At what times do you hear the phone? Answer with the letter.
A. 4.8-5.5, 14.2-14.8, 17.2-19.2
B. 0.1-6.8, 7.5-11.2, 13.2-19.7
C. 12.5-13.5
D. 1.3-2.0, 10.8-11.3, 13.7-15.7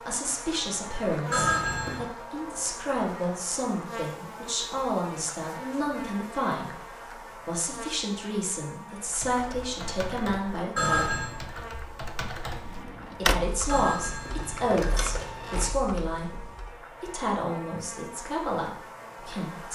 D.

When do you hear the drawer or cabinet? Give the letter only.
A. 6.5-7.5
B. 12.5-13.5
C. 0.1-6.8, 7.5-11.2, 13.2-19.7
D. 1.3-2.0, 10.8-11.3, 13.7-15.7
B.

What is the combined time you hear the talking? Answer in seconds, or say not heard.
17 s.